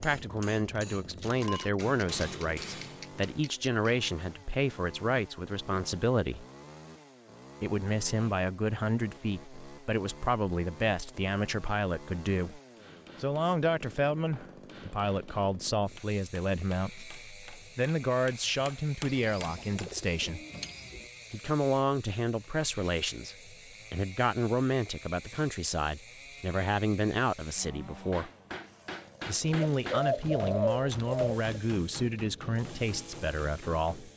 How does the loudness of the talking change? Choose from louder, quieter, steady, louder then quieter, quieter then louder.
steady.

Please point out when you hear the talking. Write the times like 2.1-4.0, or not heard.
0.0-6.5, 7.6-12.6, 13.2-20.4, 21.3-28.3, 29.2-34.1.